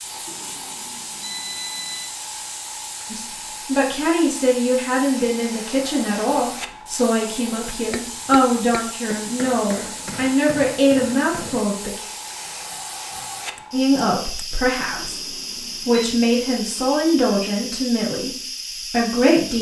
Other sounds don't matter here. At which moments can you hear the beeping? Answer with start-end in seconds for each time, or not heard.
0.2-2.1, 14.9-16.1.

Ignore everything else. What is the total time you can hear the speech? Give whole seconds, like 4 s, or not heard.
15 s.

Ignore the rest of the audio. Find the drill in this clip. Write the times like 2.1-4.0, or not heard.
not heard.